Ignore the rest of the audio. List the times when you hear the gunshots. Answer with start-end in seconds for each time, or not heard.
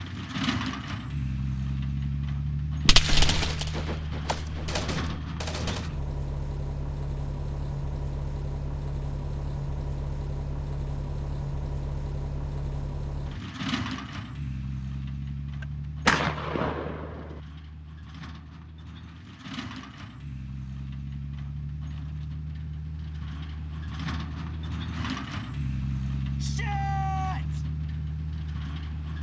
2.9-5.8, 15.6-17.4.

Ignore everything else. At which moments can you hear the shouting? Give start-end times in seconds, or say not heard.
26.4-27.6.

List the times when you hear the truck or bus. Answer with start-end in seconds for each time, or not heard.
0.0-29.1.